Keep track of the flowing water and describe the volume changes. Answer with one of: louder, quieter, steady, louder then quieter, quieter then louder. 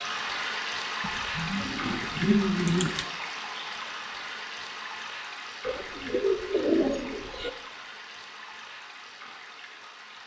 quieter.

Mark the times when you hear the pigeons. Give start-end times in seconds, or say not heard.
1.0-3.0, 5.7-7.5.